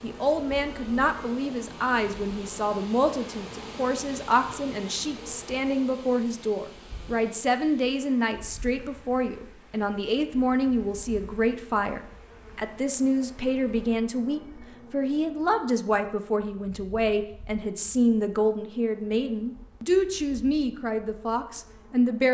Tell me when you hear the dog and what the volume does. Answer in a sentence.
You can't hear the dog here.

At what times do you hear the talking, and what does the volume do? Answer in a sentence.
The talking can be heard from 0.0 to 22.2 s, at a steady volume.